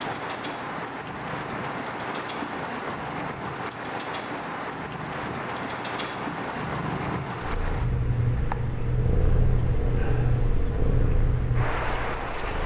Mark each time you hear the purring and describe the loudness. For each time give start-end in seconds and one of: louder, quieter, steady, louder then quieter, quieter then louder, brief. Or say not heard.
0.0-12.6 louder.